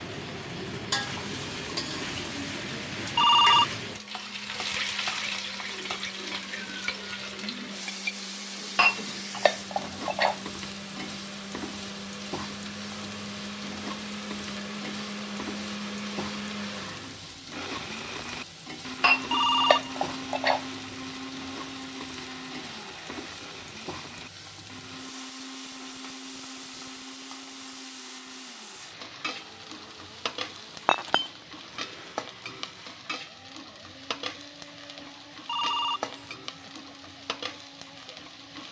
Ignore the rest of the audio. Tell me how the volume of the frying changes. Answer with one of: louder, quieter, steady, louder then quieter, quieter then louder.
quieter.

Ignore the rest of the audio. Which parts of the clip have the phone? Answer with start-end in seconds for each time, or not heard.
3.1-3.6, 19.3-19.9, 35.5-36.4.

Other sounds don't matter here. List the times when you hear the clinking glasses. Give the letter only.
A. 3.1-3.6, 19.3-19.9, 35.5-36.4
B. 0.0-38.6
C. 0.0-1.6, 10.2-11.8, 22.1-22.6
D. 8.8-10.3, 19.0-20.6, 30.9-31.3
D.